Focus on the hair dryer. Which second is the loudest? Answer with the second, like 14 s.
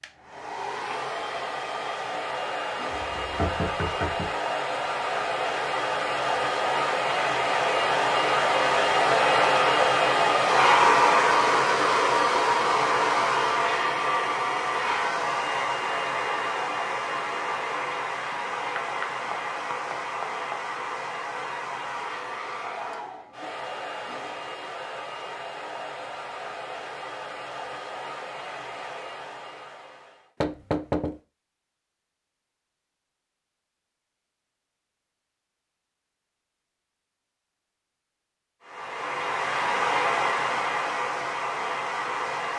11 s.